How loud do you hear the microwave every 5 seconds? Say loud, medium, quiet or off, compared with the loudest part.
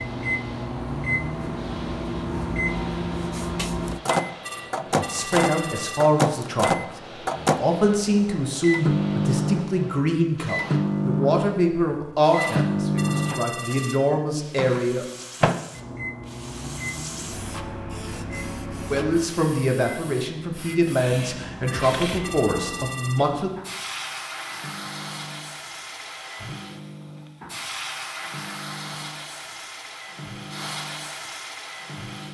loud, loud, loud, medium, quiet, quiet, quiet.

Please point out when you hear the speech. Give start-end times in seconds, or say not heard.
5.0-15.1, 18.9-23.5.